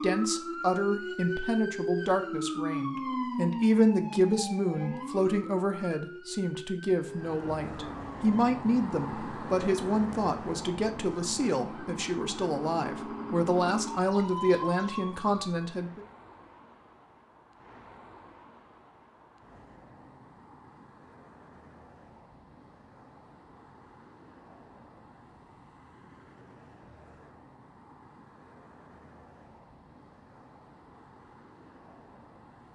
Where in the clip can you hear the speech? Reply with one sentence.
You can hear the speech from 0.0 to 16.1 s.